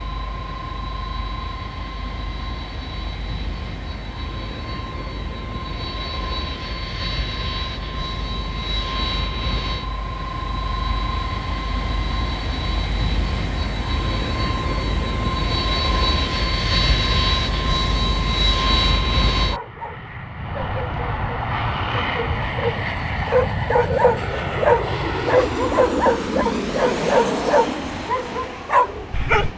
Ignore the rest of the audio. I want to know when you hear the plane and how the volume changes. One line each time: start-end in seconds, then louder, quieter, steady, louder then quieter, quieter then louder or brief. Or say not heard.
0.0-29.5 louder.